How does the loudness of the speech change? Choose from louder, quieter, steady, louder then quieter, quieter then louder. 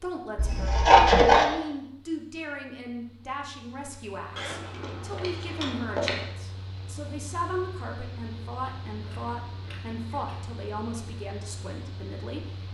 steady.